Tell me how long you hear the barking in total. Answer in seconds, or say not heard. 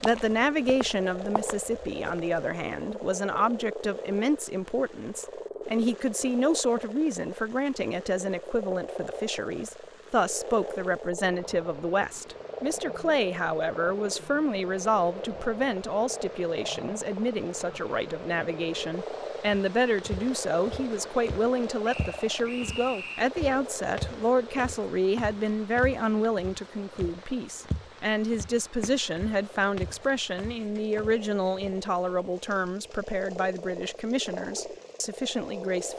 not heard.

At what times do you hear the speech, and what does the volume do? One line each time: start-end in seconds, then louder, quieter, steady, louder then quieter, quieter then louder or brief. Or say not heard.
0.0-35.9 steady.